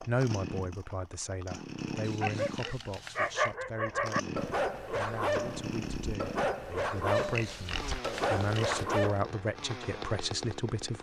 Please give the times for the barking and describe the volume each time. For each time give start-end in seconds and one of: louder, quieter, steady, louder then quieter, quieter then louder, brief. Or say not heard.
1.9-9.2 steady.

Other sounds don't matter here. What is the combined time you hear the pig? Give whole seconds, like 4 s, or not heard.
3 s.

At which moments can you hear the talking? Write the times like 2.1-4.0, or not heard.
0.0-10.9.